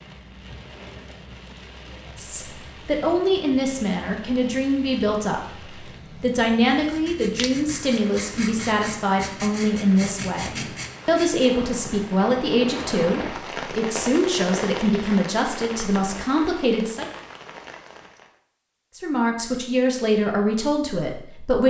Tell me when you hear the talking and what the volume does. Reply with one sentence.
The talking can be heard from 2.1 to 17.1 s, at a steady volume; and briefly from 18.9 to 21.6 s.